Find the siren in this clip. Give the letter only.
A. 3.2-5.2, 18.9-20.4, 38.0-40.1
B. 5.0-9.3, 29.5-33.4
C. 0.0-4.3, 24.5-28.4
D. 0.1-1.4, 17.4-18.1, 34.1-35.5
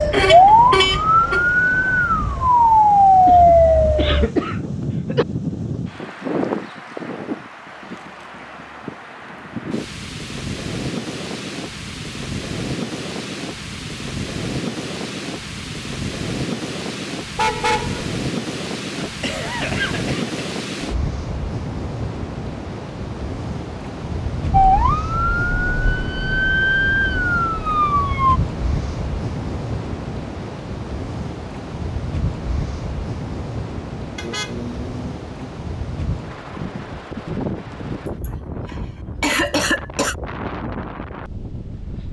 C.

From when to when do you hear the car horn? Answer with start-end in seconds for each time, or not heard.
0.1-1.4, 17.4-18.1, 34.1-35.5.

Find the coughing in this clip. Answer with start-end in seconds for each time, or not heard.
3.2-5.2, 18.9-20.4, 38.0-40.1.